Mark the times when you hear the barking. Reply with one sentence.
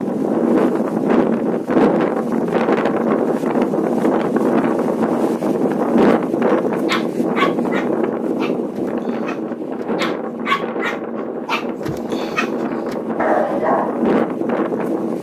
You can hear the barking from 6.7 to 13.9 s.